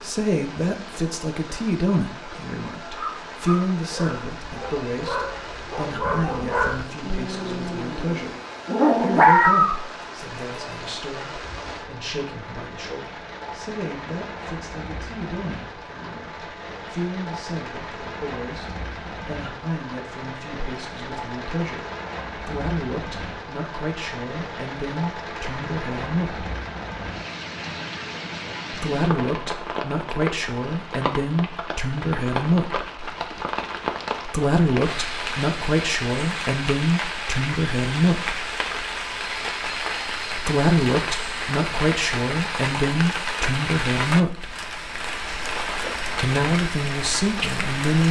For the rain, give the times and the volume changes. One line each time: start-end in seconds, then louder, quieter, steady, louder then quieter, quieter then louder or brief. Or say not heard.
0.0-48.0 louder.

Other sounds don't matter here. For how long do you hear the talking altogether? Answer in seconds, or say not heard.
40 s.